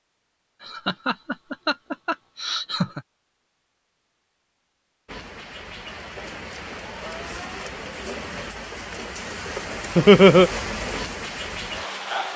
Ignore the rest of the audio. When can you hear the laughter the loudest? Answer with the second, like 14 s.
10 s.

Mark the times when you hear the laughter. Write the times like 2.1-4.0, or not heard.
0.6-3.0, 9.9-10.5.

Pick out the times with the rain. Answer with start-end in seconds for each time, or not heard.
5.0-12.3.